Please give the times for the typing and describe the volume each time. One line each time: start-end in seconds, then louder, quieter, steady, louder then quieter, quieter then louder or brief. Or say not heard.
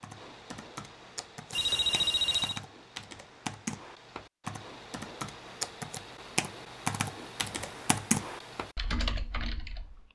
0.0-10.0 louder.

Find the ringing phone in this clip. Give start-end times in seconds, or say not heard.
1.5-2.6.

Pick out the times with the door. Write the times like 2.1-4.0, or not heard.
not heard.